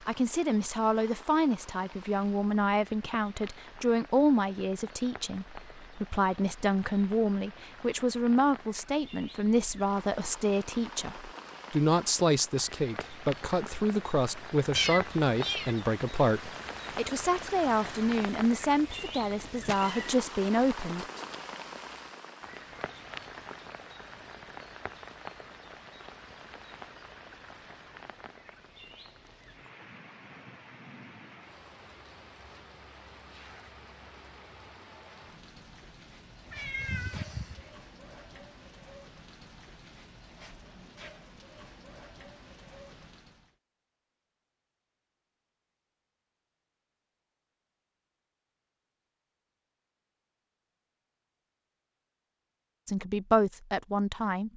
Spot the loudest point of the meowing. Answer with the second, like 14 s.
15 s.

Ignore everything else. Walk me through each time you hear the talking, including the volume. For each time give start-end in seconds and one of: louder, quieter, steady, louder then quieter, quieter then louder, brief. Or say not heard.
0.1-21.1 steady
52.9-54.5 brief.